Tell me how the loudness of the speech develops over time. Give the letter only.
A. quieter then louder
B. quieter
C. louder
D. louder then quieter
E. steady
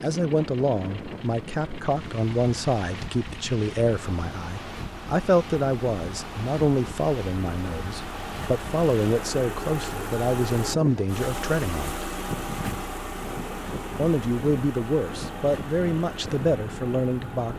E.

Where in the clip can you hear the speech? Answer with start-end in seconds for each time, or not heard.
0.0-12.1, 13.9-17.5.